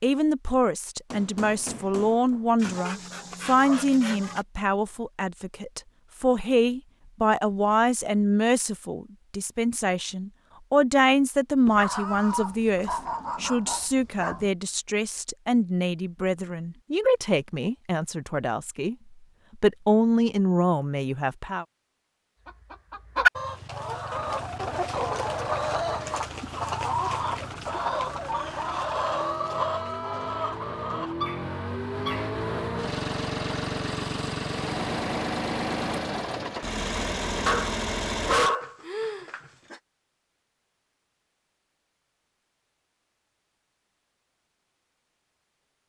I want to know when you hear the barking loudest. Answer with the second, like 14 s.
38 s.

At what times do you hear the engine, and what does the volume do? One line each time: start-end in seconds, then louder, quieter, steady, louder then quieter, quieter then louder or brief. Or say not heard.
24.1-38.4 louder.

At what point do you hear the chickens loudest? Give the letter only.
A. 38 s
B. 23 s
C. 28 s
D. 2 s
B.